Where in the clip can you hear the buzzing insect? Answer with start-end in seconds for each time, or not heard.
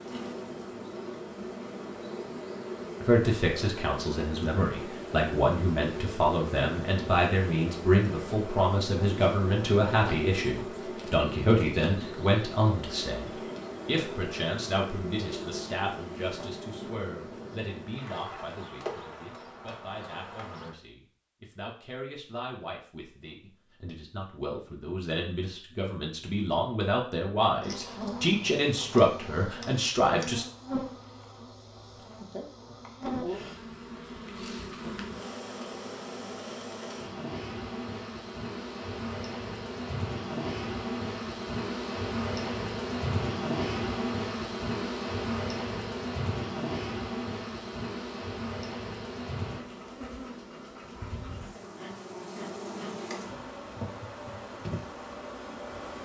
0.0-20.8, 27.6-56.0.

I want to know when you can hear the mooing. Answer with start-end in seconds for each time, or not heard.
not heard.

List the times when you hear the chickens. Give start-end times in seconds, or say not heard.
not heard.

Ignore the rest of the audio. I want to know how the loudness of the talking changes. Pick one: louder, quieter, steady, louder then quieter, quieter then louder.
quieter then louder.